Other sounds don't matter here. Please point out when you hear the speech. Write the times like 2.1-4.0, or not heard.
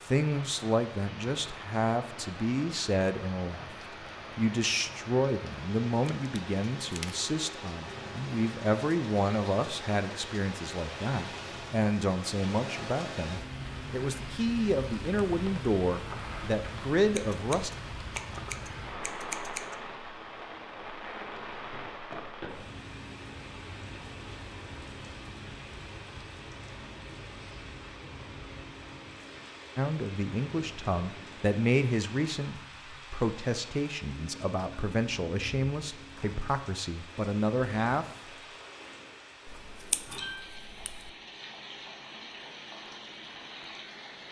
0.1-3.6, 4.3-17.7, 29.8-38.0.